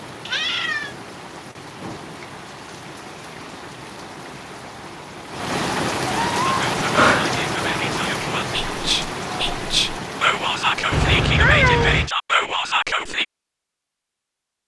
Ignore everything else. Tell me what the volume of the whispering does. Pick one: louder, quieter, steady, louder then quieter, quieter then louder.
louder.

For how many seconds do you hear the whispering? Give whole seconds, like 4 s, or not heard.
7 s.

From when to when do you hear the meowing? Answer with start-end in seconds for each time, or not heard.
0.2-0.9, 6.0-7.4, 10.9-12.1.